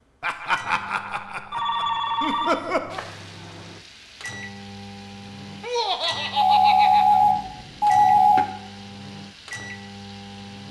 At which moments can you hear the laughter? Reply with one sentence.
The laughter can be heard from 0.2 to 3.0 s and from 5.6 to 7.2 s.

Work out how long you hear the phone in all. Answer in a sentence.
The phone can be heard for 4 seconds in total.